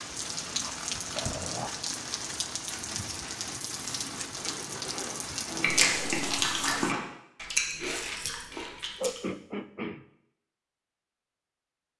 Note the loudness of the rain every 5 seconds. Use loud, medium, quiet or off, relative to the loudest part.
loud, loud, off.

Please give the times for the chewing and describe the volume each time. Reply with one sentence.
You can hear the chewing from 2.7 to 9.2 s, getting louder then quieter.